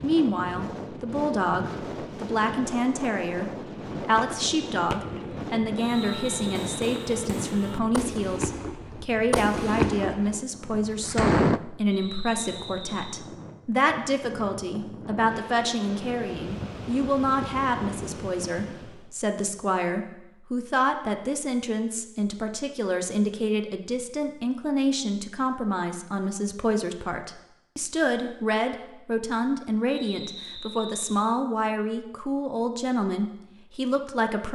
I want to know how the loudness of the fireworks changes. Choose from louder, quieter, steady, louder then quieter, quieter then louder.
louder then quieter.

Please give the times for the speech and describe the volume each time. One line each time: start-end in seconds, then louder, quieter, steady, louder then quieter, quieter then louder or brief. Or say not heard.
0.0-34.5 steady.